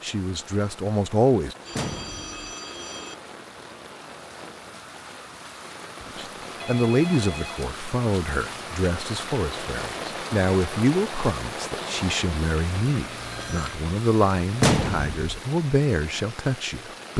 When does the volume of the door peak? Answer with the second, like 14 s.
15 s.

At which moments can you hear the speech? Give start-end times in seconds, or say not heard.
0.0-1.6, 6.2-17.1.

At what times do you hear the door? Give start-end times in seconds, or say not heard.
1.7-2.4, 14.6-15.3.